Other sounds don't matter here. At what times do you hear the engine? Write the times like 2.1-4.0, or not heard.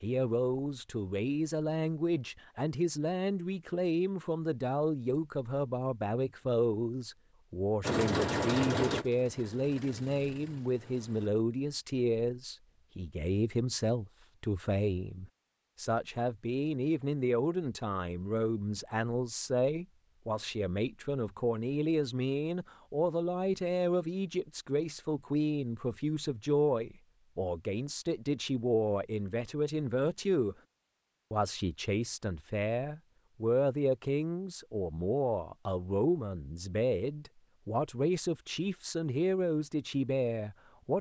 7.8-11.3.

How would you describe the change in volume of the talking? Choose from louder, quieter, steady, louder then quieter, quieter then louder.
steady.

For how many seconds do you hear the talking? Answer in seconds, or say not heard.
40 s.